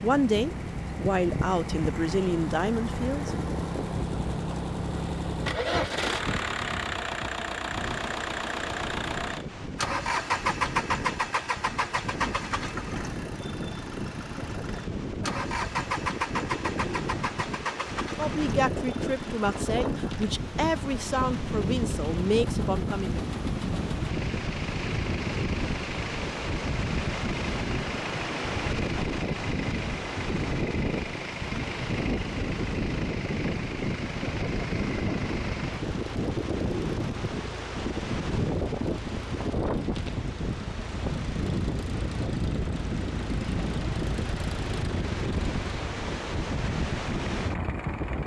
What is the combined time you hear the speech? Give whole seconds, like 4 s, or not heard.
8 s.